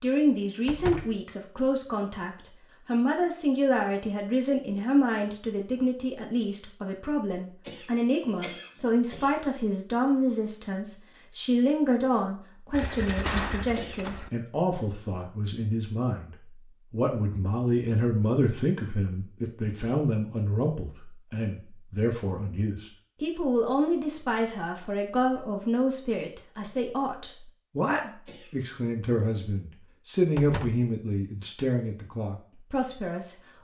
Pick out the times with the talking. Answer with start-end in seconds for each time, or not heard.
0.0-33.4.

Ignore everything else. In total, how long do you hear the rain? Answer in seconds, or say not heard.
not heard.